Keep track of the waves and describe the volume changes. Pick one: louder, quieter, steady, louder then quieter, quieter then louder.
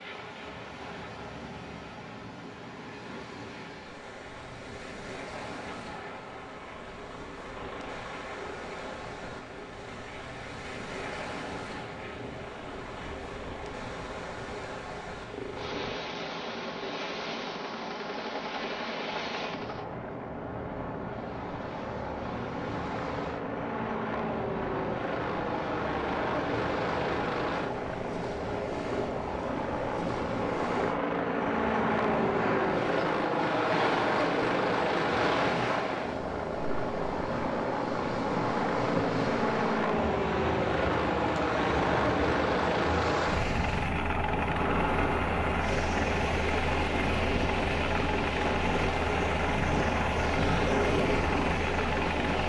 louder.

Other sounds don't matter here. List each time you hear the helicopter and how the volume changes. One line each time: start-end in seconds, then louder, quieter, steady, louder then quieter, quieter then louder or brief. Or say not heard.
0.0-52.4 louder.